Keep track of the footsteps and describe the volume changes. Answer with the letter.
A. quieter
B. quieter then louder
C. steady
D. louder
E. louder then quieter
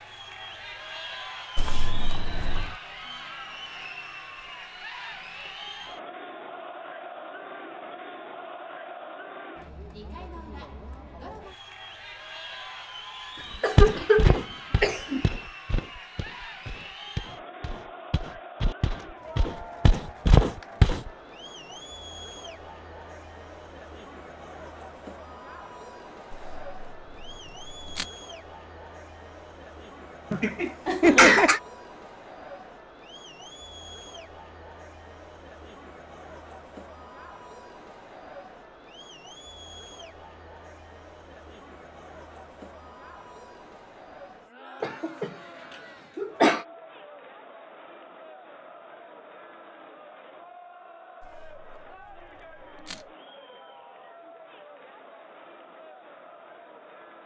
B.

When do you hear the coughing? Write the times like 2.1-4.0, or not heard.
13.6-15.2, 30.3-31.6, 44.8-45.3, 46.1-46.6.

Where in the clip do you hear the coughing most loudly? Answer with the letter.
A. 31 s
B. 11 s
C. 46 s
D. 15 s
A.